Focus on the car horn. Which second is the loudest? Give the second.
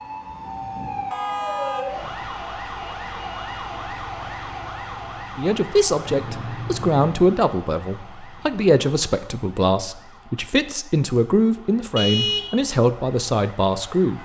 12 s.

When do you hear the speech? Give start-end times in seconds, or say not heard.
5.3-14.2.